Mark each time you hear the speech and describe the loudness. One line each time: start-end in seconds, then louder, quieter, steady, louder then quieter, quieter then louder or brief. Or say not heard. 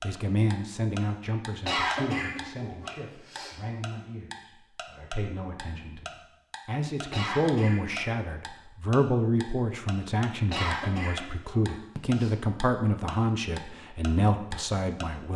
0.0-15.3 quieter then louder.